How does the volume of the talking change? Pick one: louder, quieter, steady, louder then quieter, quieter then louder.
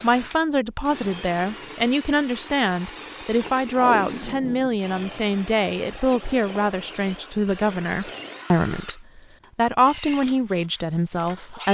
steady.